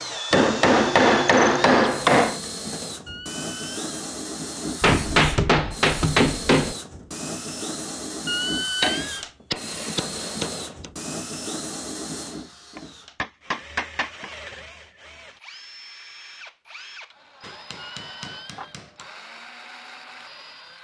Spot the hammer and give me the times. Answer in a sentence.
The hammer can be heard from 0.3 to 2.4 s, from 4.8 to 6.8 s, from 8.8 to 10.8 s, from 12.8 to 14.3 s and from 17.4 to 19.1 s.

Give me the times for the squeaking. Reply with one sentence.
The squeaking can be heard from 3.0 to 3.8 s, from 8.2 to 9.2 s and from 17.8 to 18.8 s.